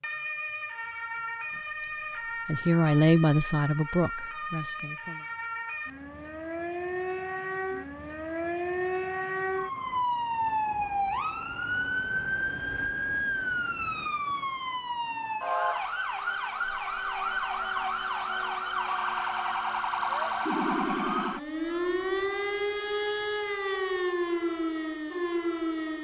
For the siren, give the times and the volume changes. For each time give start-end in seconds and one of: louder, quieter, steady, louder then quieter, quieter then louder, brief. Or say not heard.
0.0-25.9 louder.